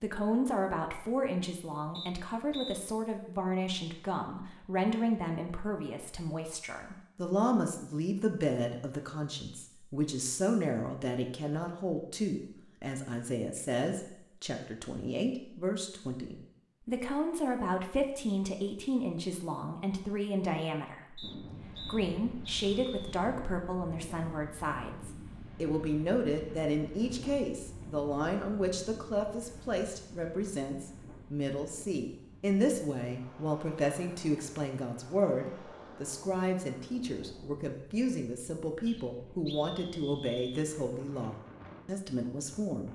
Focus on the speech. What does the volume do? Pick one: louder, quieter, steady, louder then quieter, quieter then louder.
steady.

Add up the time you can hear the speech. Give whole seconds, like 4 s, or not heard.
43 s.